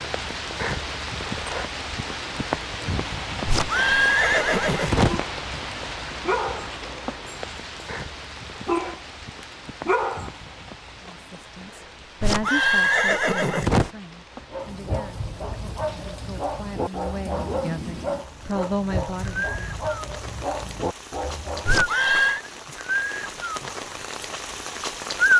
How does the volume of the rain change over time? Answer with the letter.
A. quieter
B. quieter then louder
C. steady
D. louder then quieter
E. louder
B.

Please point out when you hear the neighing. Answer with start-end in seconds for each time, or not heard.
3.5-5.2, 12.2-13.9, 21.6-22.4.